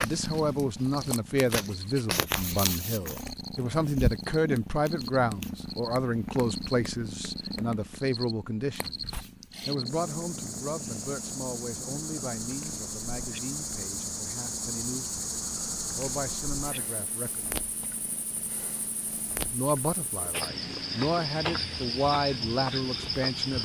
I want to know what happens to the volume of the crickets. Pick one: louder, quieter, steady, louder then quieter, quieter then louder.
louder.